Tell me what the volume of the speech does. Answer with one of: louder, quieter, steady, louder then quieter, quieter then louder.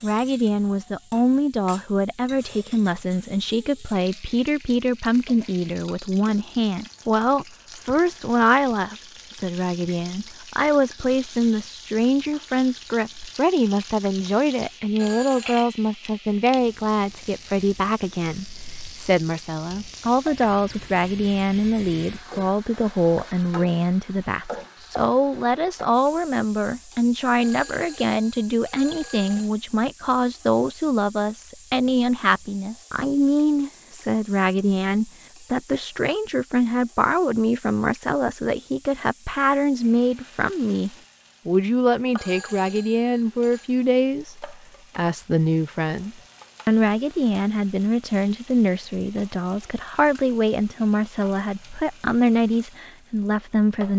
steady.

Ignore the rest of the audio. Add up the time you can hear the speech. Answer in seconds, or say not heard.
54 s.